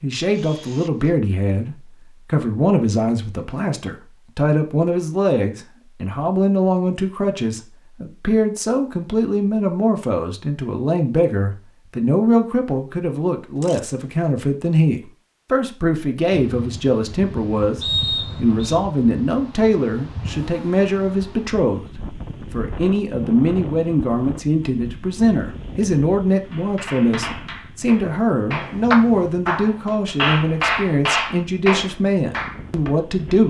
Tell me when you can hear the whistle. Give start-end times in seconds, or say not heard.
17.8-18.8.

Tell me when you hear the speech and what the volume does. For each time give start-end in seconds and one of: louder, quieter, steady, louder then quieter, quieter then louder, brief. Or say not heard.
0.0-33.4 steady.